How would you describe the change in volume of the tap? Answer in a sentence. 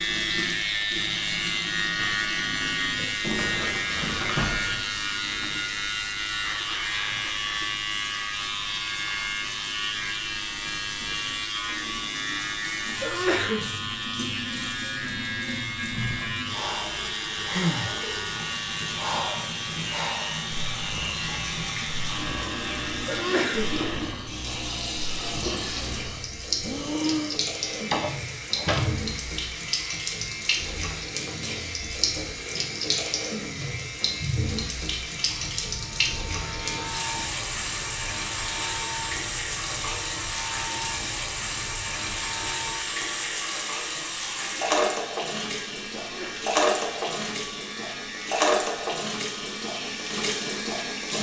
The loudness of the tap goes up.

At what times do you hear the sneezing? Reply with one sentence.
You can hear the sneezing from 13.0 to 13.7 s, from 23.1 to 23.7 s and from 45.9 to 46.6 s.